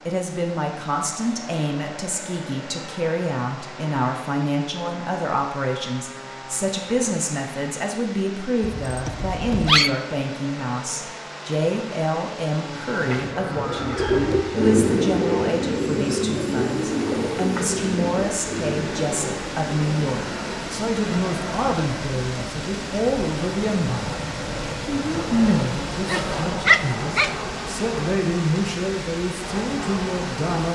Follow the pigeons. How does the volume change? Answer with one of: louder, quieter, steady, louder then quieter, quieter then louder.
quieter.